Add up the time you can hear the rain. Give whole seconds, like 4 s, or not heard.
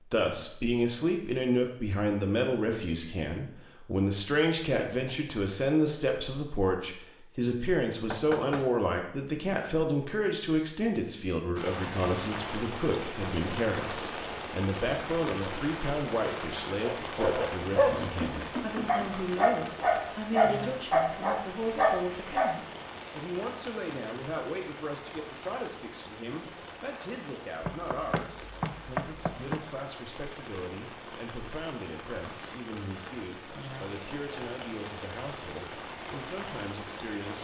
26 s.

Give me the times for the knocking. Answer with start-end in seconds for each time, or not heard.
8.1-8.8, 17.9-19.1, 27.6-29.6.